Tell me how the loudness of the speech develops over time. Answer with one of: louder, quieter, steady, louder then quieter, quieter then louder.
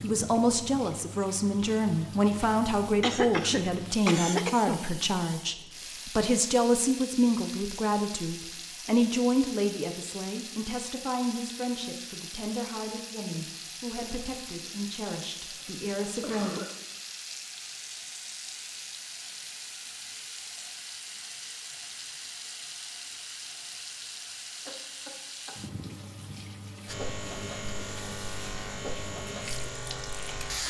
quieter.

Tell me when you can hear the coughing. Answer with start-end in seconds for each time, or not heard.
3.0-4.8, 15.5-16.8, 24.6-25.6.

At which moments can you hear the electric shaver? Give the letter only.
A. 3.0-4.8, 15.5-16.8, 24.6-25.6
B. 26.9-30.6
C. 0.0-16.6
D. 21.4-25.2
B.